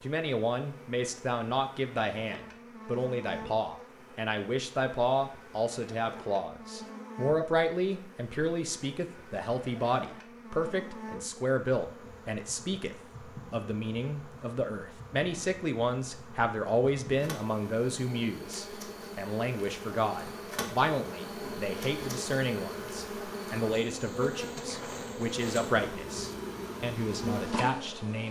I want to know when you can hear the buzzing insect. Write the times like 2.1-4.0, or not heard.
0.0-28.2.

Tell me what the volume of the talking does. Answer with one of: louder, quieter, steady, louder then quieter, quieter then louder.
steady.